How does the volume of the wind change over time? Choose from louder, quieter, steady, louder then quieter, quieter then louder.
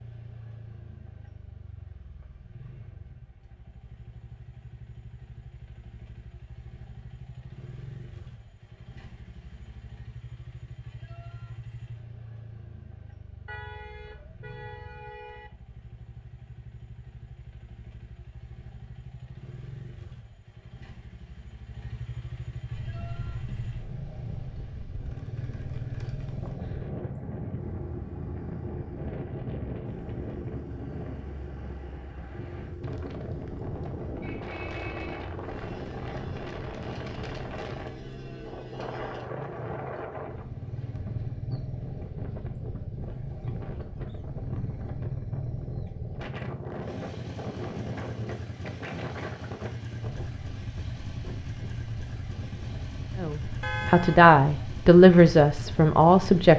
steady.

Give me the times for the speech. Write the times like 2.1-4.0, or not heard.
53.2-56.5.